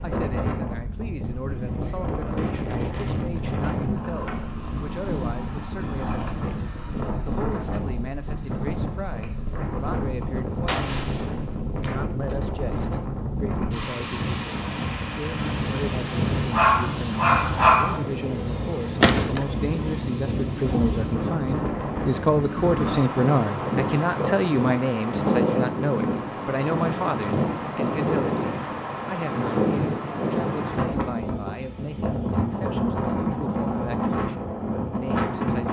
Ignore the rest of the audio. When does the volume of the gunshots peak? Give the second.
19 s.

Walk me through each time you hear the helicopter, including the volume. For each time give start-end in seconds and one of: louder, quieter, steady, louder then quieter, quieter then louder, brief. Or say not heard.
not heard.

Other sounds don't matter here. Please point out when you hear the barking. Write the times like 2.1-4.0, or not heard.
16.5-18.0.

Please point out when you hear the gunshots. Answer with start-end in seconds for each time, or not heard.
10.7-12.3, 19.0-19.4.